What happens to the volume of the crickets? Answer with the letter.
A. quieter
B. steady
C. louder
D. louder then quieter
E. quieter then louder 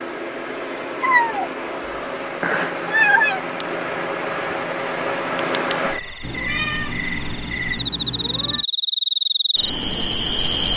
C.